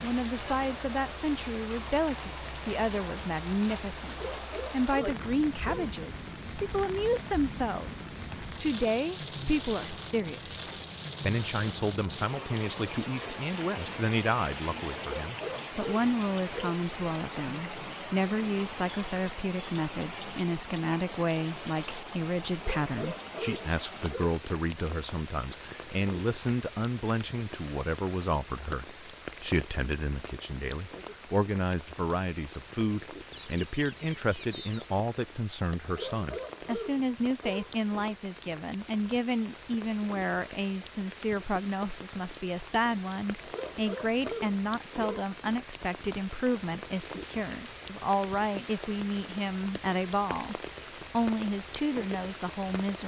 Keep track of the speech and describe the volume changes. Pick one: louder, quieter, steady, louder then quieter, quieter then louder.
steady.